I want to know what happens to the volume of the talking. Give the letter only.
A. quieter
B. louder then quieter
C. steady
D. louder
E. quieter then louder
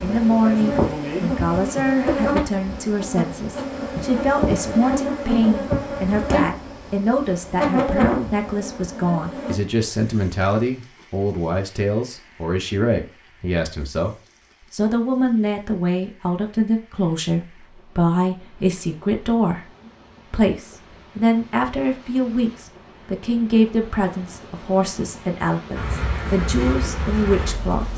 C.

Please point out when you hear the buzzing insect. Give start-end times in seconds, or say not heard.
0.0-9.6, 25.8-27.9.